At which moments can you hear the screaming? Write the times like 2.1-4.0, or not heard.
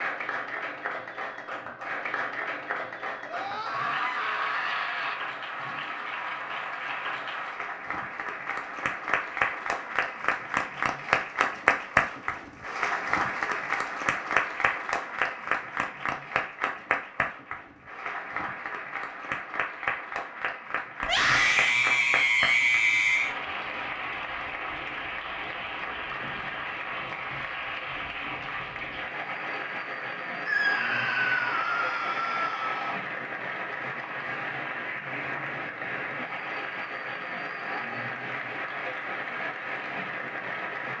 3.2-5.2, 21.0-23.4, 30.4-33.0.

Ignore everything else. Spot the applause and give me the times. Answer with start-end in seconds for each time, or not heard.
0.0-40.9.